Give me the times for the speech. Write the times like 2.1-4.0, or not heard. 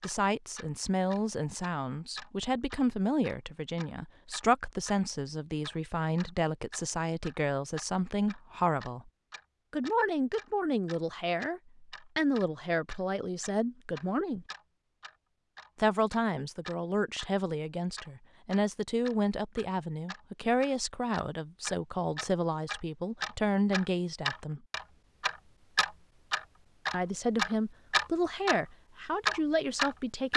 0.0-9.1, 9.7-14.4, 15.8-24.6, 26.9-30.3.